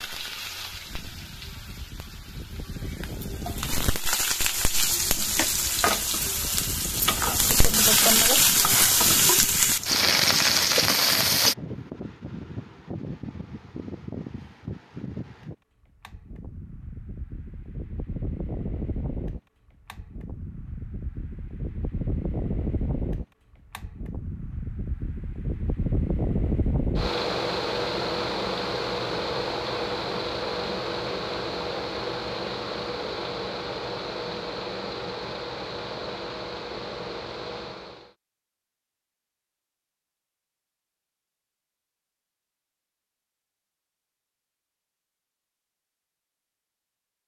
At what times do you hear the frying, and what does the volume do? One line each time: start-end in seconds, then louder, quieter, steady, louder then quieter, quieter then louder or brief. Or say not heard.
0.0-11.6 louder.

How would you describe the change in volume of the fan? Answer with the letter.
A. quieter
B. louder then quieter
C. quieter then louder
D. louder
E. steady
D.